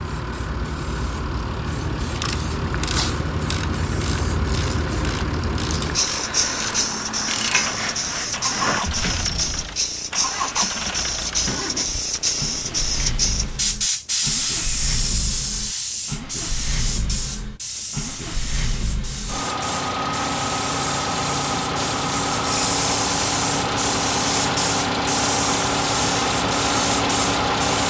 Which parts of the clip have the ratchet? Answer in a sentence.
The ratchet can be heard from 2.0 to 9.7 s.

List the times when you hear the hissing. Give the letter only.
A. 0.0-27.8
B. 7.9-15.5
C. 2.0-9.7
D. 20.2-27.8
A.